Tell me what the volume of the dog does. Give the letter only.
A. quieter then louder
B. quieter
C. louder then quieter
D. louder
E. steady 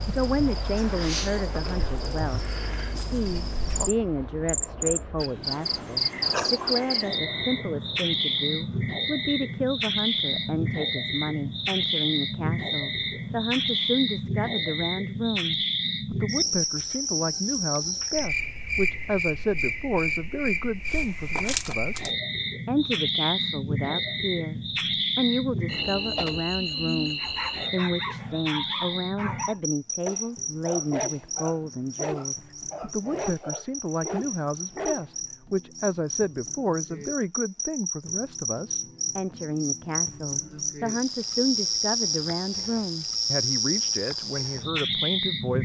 E.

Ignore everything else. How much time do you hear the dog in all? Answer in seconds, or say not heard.
8 s.